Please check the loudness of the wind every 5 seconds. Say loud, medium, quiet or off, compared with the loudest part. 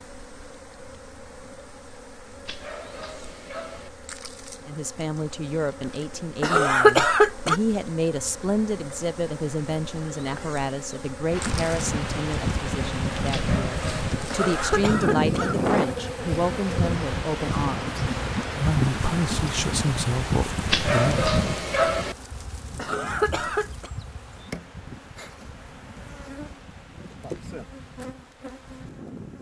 off, off, loud, loud, medium, quiet.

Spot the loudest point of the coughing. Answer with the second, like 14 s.
7 s.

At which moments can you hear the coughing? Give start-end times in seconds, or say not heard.
6.4-7.6, 14.3-15.6, 22.8-23.9.